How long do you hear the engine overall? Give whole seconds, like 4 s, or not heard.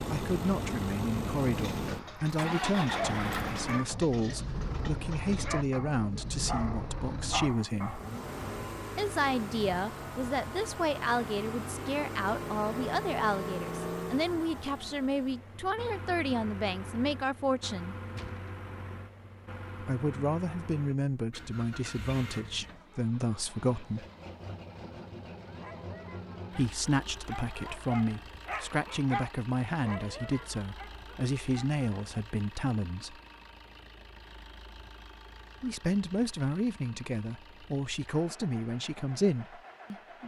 40 s.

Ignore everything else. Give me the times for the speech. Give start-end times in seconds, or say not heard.
0.0-8.0, 8.9-17.9, 19.8-24.1, 26.5-33.2, 35.6-40.2.